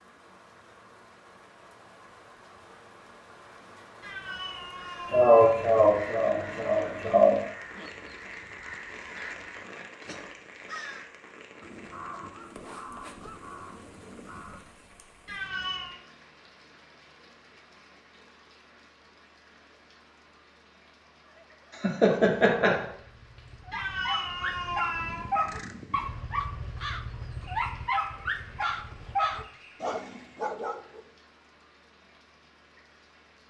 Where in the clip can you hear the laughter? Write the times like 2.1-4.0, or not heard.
5.1-7.3, 21.8-22.9.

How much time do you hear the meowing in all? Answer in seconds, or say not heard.
4 s.